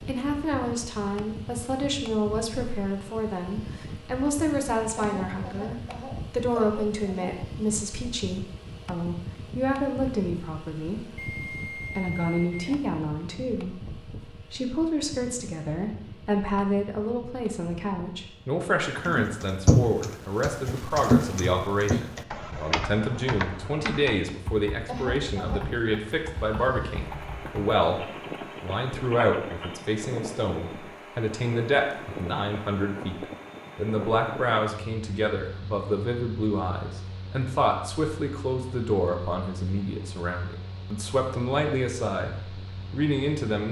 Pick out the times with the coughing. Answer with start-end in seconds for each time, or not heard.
5.0-7.3, 24.9-25.6.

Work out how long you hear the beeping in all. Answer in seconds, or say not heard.
2 s.